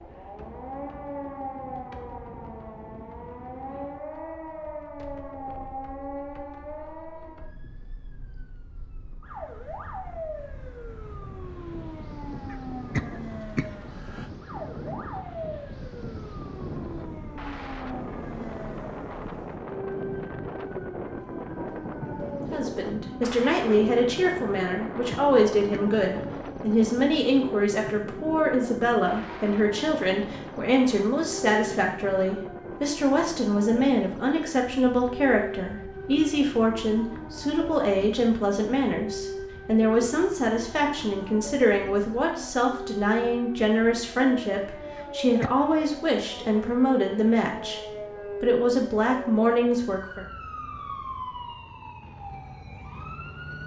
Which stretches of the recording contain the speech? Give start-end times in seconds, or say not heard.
22.5-50.2.